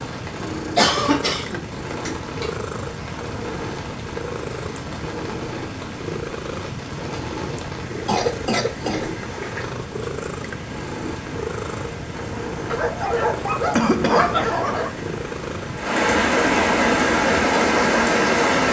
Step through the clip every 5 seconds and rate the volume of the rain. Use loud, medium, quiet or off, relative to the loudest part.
quiet, quiet, quiet, loud.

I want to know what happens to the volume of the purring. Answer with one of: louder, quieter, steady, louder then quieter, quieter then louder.
steady.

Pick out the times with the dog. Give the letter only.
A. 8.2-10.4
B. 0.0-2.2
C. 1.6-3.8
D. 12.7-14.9
D.